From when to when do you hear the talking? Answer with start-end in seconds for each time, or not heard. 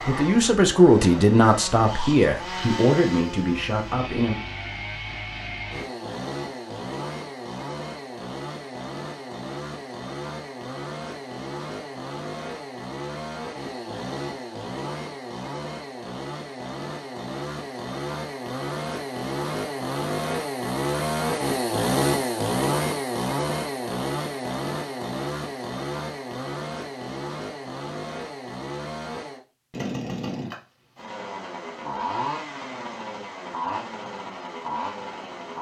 0.1-4.4.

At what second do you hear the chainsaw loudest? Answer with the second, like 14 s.
22 s.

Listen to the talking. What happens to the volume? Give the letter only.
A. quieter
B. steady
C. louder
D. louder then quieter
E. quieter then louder
A.